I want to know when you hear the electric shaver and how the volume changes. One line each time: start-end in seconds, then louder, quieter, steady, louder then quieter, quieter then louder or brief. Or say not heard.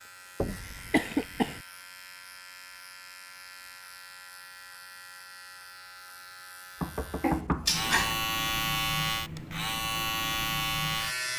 0.0-11.3 louder.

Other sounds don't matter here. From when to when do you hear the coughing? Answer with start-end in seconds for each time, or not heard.
0.5-1.6, 7.2-8.2.